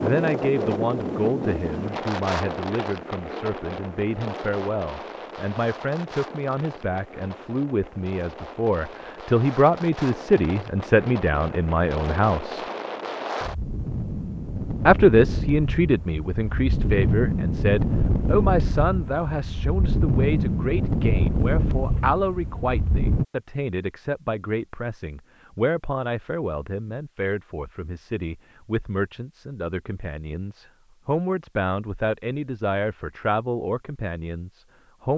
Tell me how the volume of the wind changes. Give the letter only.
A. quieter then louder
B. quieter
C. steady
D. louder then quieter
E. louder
A.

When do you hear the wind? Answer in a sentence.
The wind can be heard from 0.0 to 23.2 s.